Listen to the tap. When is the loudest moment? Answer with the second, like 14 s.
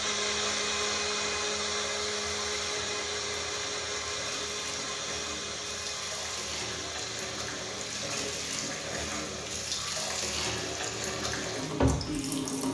12 s.